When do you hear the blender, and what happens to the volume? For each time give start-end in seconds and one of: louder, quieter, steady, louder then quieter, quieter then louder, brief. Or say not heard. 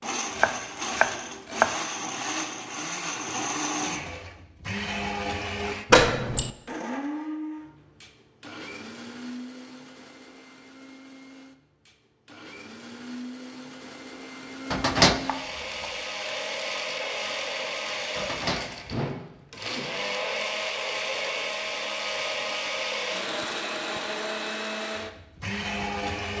0.0-26.3 quieter then louder.